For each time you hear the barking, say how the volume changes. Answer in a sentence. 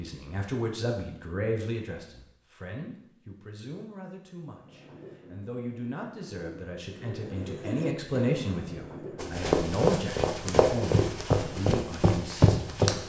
You can't hear the barking here.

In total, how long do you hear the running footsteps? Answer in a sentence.
You can hear the running footsteps for 4 seconds altogether.